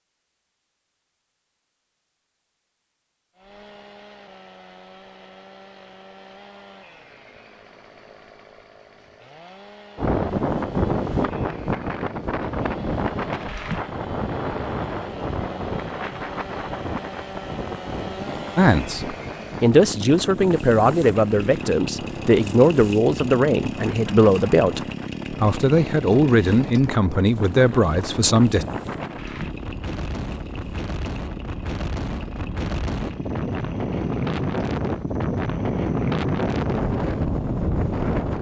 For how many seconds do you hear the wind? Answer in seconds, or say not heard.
28 s.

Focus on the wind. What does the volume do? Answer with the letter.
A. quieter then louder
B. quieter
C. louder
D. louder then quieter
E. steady
A.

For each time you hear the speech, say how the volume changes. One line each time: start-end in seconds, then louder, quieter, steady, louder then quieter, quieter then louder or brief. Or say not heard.
18.6-28.6 steady.